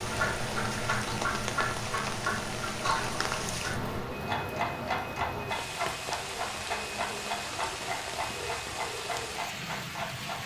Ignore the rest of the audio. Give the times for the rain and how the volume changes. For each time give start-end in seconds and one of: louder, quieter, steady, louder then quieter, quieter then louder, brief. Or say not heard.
0.0-10.4 steady.